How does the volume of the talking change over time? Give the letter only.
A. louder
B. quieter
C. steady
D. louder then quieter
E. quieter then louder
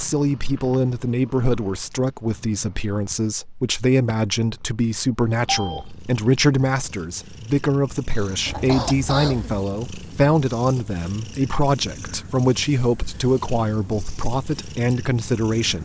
C.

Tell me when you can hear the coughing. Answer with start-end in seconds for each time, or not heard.
8.1-9.6.